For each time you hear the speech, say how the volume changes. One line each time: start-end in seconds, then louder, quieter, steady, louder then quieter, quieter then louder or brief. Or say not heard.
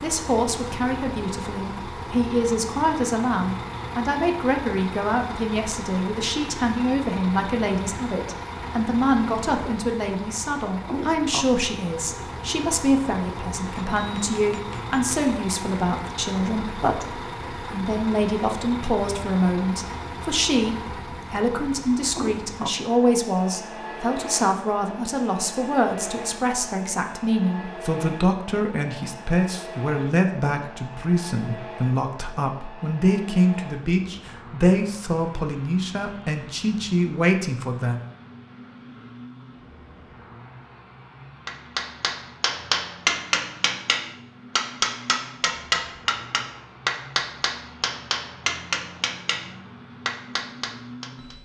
0.0-38.0 steady.